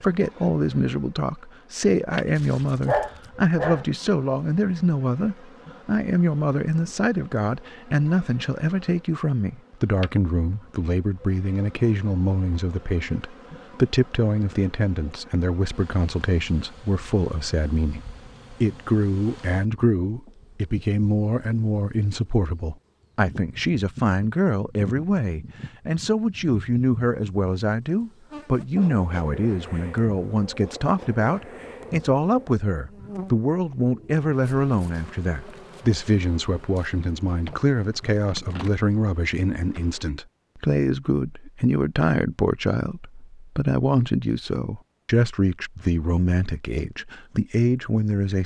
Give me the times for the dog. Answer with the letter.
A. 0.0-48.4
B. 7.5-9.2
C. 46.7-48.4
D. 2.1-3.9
D.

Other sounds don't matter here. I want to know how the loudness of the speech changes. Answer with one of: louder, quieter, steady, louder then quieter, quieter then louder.
steady.